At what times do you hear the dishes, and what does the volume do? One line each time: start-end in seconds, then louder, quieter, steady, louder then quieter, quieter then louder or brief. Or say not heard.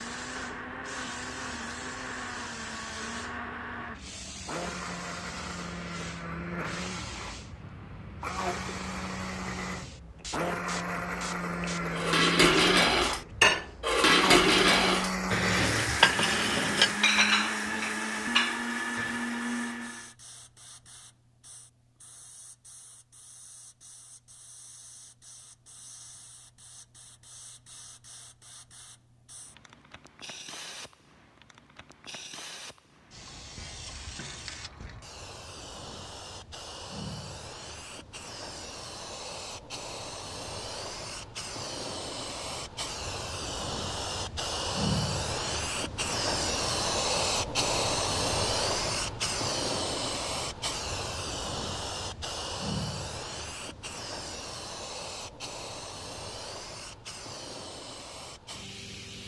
11.9-19.2 quieter.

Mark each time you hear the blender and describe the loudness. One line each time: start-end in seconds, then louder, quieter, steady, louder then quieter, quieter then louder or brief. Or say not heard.
0.0-20.1 louder.